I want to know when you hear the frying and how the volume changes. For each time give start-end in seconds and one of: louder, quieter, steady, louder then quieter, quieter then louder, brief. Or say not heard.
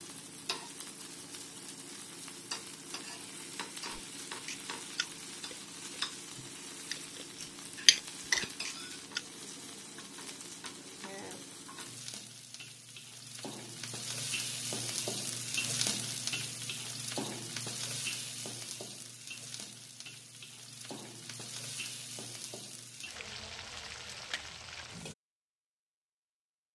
0.0-25.1 louder then quieter.